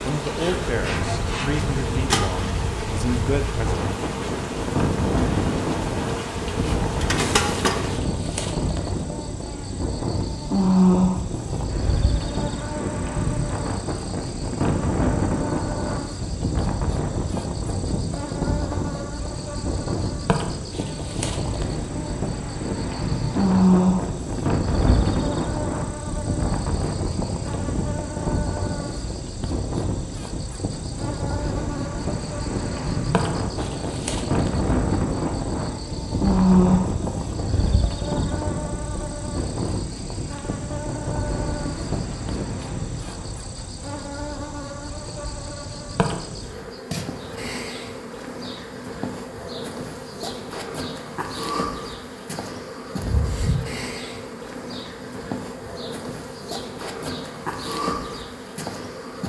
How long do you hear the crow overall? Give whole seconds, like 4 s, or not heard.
not heard.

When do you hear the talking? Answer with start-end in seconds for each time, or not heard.
0.0-3.9.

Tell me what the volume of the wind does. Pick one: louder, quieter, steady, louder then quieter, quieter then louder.
steady.